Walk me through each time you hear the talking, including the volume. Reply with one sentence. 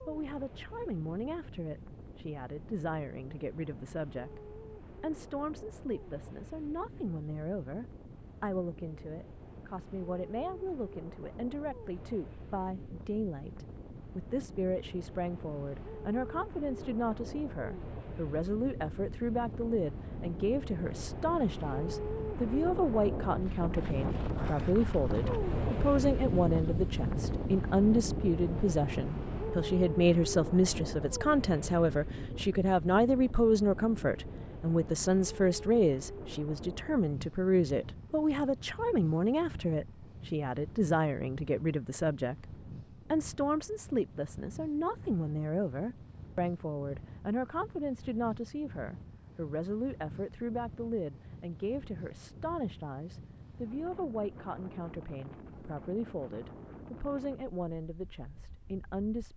You can hear the talking from 0.1 to 59.3 s, getting louder then quieter.